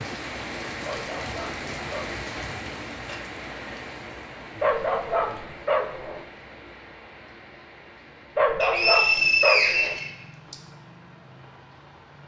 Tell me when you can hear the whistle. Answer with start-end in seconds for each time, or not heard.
8.6-10.6.